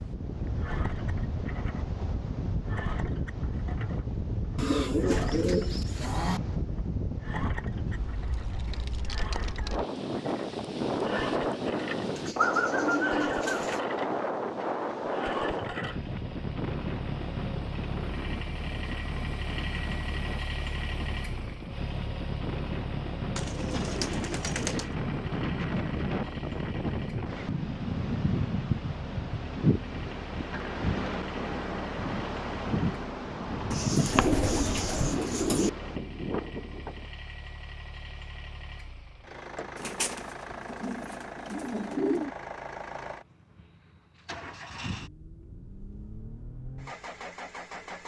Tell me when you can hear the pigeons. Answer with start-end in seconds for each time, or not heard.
4.5-6.4, 12.0-13.8, 23.4-24.9, 33.7-35.7, 39.8-42.3.